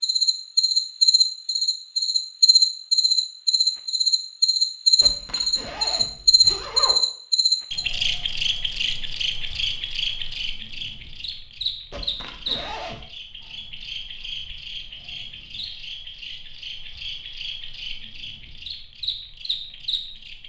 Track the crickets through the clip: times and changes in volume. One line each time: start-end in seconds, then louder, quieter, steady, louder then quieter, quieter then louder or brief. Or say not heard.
0.0-20.4 quieter.